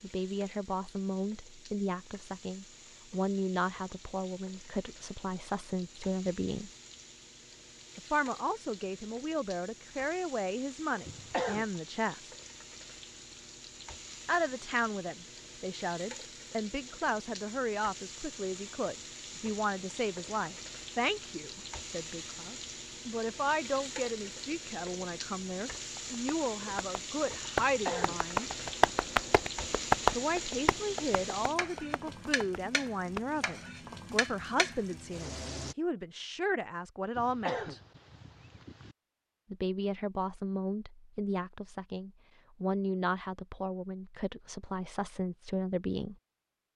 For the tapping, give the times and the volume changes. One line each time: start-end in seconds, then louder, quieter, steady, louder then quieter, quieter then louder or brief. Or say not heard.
25.9-33.5 louder then quieter.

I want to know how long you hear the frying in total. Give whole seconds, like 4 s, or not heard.
36 s.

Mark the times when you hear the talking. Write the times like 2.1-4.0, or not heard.
0.0-6.7, 8.0-12.3, 14.2-28.5, 30.1-37.8, 39.5-46.1.